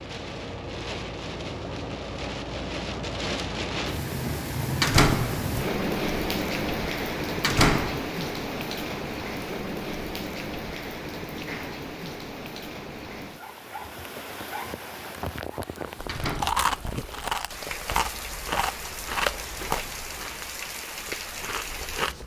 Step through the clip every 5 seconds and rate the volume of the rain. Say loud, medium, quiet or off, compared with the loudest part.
loud, loud, medium, medium, medium.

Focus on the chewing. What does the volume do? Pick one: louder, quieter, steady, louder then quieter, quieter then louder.
quieter.